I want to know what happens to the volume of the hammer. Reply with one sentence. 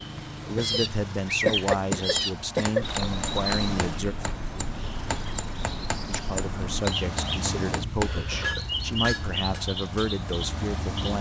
The loudness of the hammer goes down, then up.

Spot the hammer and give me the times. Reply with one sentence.
You can hear the hammer from 1.6 to 10.1 s.